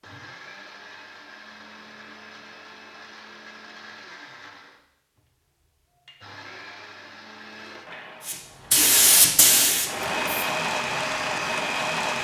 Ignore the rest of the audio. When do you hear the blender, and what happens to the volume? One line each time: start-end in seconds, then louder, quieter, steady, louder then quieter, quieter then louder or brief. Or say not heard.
0.0-8.4 steady
9.7-12.2 brief.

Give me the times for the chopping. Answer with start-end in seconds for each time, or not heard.
not heard.